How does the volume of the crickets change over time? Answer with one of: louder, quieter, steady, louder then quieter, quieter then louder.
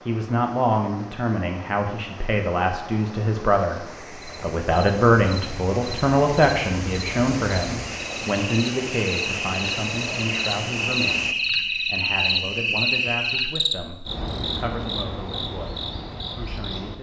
louder then quieter.